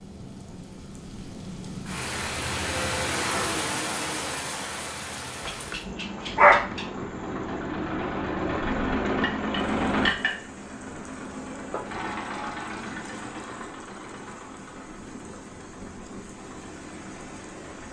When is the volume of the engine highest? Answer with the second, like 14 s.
10 s.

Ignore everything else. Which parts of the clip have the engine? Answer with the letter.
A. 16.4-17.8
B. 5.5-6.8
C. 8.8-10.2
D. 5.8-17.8
D.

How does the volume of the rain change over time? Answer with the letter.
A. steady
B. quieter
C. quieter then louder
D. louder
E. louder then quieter
B.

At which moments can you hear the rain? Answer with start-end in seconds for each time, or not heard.
0.0-17.8.